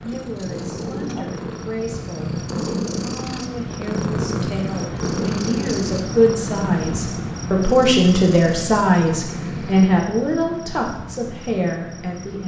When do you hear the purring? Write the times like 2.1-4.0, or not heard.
0.0-9.9.